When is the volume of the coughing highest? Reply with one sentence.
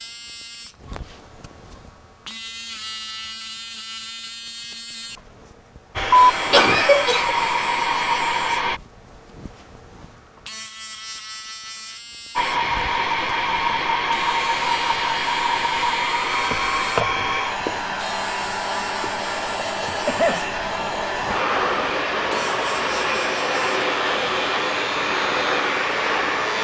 The volume of the coughing peaks at 7 seconds.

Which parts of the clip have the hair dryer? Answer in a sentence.
The hair dryer can be heard from 6.0 to 8.8 s and from 12.3 to 26.5 s.